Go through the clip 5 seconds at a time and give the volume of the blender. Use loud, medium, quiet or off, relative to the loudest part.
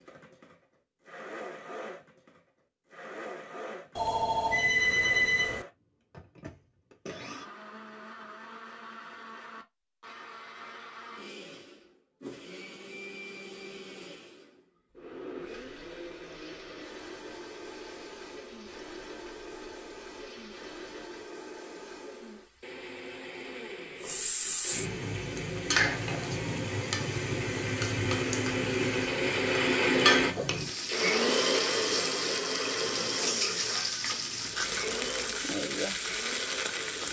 quiet, quiet, quiet, quiet, quiet, loud, loud, medium.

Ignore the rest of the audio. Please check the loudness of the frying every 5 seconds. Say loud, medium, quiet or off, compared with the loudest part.
off, off, off, quiet, medium, loud, loud, loud.